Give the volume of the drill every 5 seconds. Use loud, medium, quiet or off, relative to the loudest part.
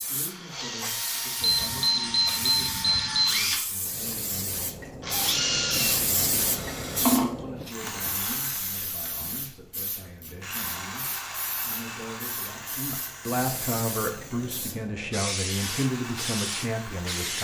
loud, loud, medium, medium.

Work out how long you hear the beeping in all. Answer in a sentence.
The beeping can be heard for 2 seconds in total.